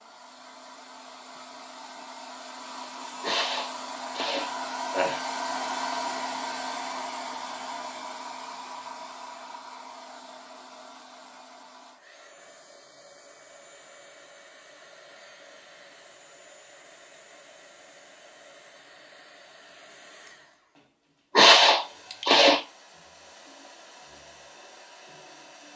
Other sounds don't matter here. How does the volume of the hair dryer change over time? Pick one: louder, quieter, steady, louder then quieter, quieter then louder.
quieter.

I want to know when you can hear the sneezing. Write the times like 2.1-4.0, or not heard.
3.2-5.2, 21.4-22.6.